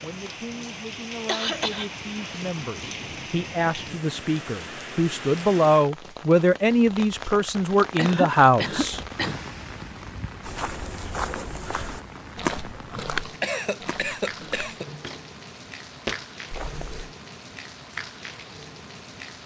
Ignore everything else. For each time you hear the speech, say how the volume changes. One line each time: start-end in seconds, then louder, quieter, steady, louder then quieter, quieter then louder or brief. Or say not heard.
0.0-9.0 louder.